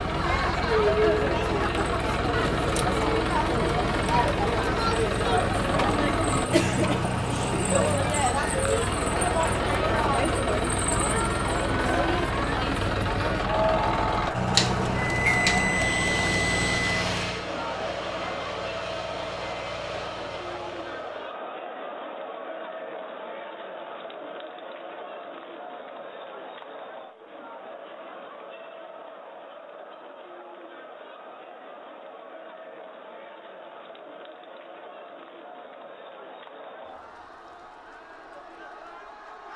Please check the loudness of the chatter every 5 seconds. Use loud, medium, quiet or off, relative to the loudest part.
loud, loud, loud, medium, medium, quiet, quiet, quiet.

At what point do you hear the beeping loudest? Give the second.
15 s.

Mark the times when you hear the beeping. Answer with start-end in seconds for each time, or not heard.
14.6-16.9.